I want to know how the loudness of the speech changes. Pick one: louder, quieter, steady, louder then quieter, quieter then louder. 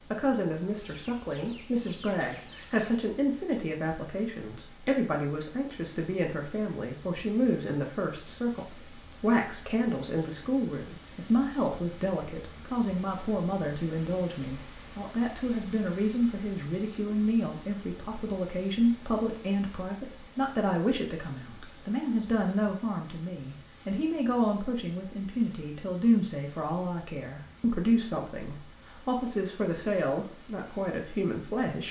steady.